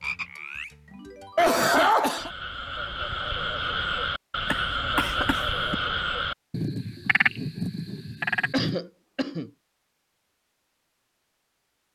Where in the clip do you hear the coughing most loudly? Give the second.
2 s.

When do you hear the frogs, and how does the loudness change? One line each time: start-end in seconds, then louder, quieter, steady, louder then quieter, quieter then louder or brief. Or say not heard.
0.0-8.8 louder.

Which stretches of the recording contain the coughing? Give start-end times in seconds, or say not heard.
1.4-2.3, 4.5-5.8, 8.5-9.5.